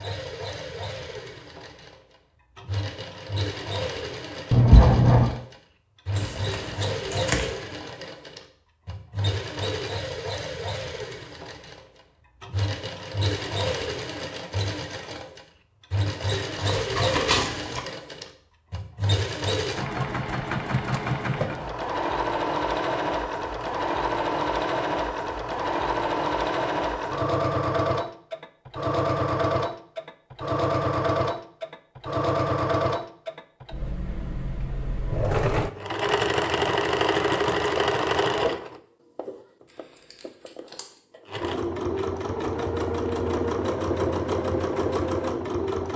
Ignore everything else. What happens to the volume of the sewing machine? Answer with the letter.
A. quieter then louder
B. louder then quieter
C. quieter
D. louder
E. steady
D.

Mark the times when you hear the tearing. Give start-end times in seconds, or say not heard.
6.2-7.5, 16.6-17.8, 39.7-40.9.